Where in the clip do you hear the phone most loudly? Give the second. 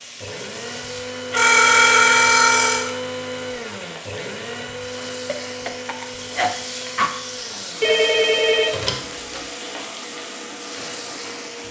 2 s.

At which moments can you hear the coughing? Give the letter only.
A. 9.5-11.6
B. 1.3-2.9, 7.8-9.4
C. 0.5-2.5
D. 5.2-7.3
D.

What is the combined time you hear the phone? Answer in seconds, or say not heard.
3 s.